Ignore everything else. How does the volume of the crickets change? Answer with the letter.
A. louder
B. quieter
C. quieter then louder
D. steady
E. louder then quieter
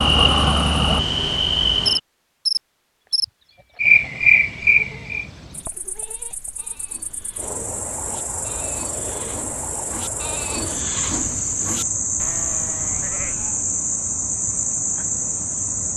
C.